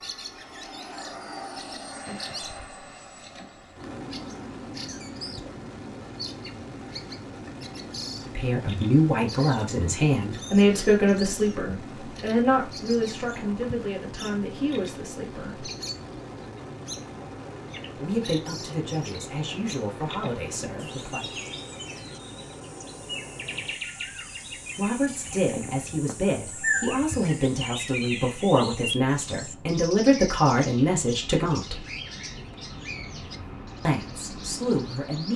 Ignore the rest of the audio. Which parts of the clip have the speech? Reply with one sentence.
The speech can be heard from 8.2 to 15.7 s, from 18.0 to 21.4 s, from 24.8 to 31.9 s and from 33.9 to 35.3 s.